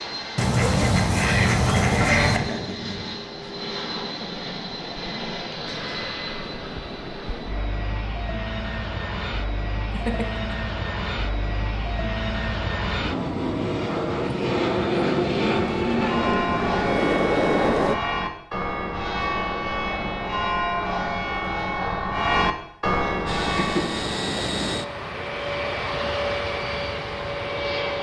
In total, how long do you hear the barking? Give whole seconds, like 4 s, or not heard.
not heard.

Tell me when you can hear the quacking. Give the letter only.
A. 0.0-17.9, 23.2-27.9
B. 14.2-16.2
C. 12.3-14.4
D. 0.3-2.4
D.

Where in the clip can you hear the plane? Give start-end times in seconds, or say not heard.
0.0-17.9, 23.2-27.9.